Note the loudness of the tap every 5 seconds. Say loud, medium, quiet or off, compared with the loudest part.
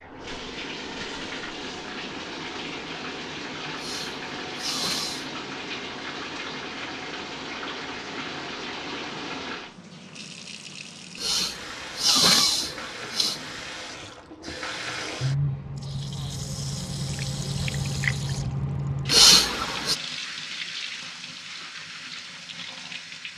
medium, medium, medium, loud, medium.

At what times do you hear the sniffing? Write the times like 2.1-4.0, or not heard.
3.8-5.3, 11.2-13.4, 19.1-19.9.